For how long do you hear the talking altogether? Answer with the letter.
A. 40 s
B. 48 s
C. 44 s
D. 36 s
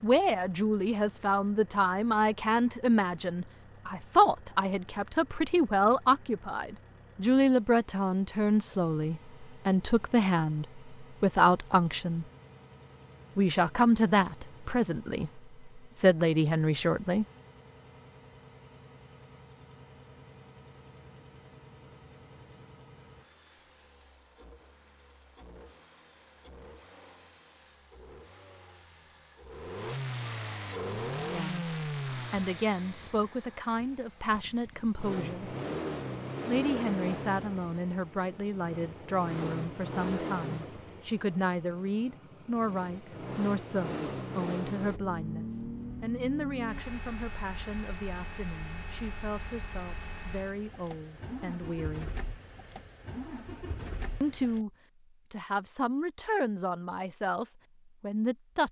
A.